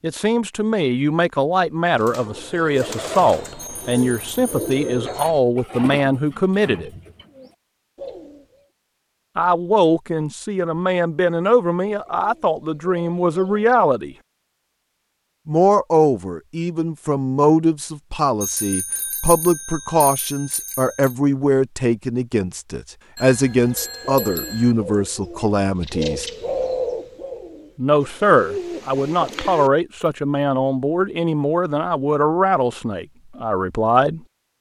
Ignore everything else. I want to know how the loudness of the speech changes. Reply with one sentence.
The volume of the speech stays about the same.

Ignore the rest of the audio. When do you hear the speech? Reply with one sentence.
You can hear the speech from 0.0 to 6.9 s, from 9.3 to 14.2 s, from 15.4 to 26.3 s and from 27.8 to 34.2 s.